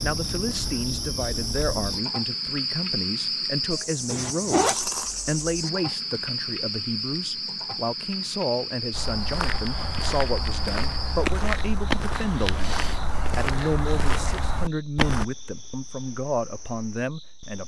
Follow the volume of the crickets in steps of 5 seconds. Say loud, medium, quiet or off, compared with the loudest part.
loud, loud, medium, quiet.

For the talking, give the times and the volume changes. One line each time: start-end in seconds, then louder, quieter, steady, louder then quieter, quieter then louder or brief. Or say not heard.
0.0-17.6 steady.